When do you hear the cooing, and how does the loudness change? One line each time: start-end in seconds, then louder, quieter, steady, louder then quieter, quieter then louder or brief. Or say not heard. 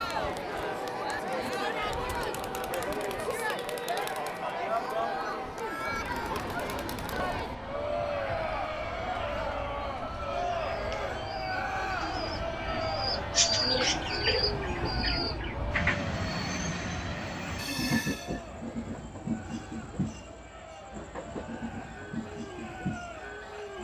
10.7-16.1 louder then quieter.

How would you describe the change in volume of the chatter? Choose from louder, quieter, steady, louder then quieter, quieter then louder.
quieter.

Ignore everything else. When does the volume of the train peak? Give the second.
18 s.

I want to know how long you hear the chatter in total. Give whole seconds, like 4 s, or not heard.
24 s.